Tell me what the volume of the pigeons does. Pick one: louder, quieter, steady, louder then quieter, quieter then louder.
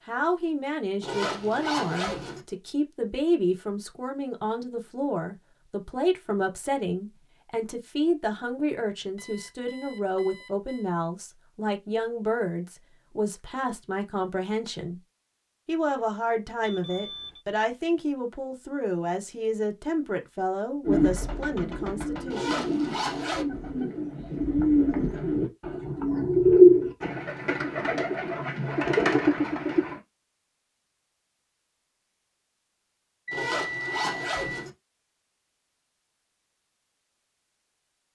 louder then quieter.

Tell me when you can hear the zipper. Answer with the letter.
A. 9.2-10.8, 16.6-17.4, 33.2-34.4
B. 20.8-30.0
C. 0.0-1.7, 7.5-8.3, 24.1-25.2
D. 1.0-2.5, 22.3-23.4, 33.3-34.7
D.